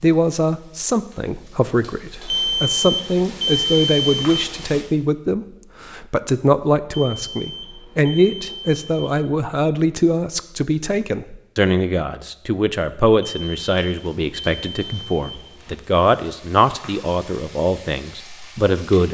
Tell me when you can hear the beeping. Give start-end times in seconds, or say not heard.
2.2-4.8, 6.9-9.2, 13.2-15.8.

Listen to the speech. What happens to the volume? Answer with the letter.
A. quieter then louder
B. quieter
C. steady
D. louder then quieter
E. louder
C.